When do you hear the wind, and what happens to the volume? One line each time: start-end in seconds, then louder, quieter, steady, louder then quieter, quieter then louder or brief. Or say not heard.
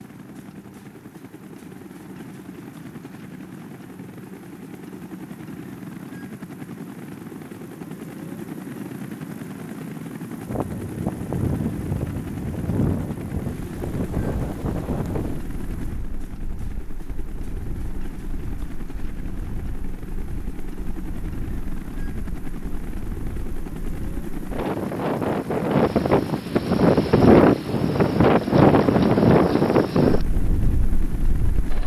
10.3-31.8 quieter then louder.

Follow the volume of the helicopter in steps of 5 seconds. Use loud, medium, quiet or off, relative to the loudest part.
medium, loud, loud, medium, loud, loud, loud.